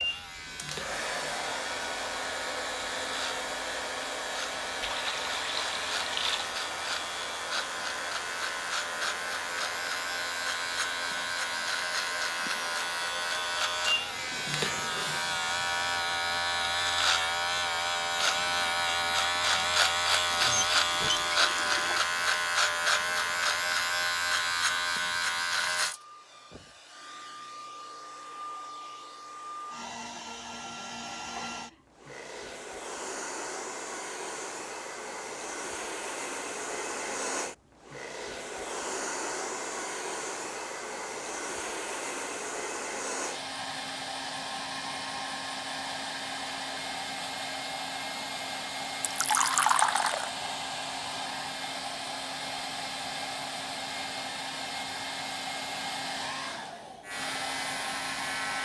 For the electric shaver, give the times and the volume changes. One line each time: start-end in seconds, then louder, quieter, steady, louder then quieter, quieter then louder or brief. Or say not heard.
0.0-25.9 louder
57.0-58.6 brief.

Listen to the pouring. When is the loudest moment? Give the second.
50 s.